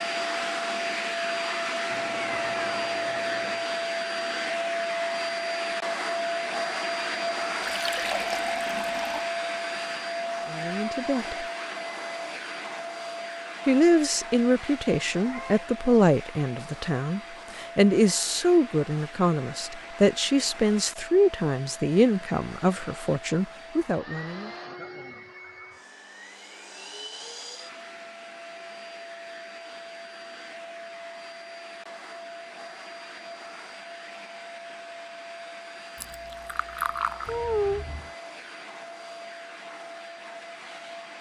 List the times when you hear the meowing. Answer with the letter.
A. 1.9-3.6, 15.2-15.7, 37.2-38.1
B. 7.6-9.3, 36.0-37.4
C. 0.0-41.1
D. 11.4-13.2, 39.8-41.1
A.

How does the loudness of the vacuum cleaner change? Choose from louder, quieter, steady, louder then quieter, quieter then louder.
quieter.